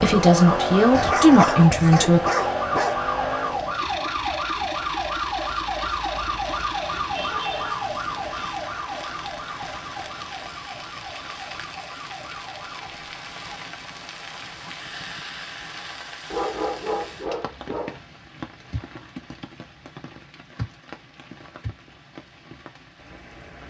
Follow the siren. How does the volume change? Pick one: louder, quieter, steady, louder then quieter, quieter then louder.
quieter.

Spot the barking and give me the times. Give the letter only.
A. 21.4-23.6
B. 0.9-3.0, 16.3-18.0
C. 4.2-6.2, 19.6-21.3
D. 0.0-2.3
B.